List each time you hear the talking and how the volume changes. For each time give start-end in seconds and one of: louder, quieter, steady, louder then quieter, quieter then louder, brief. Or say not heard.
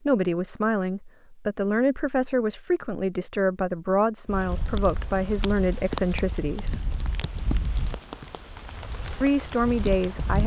0.1-6.8 steady
9.2-10.4 brief.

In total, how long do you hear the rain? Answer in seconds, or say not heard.
6 s.